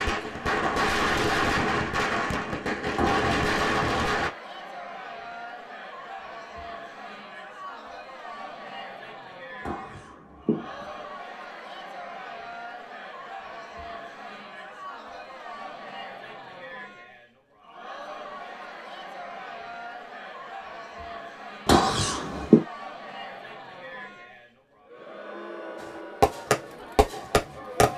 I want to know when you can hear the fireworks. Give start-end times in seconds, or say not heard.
0.0-4.3, 25.8-27.9.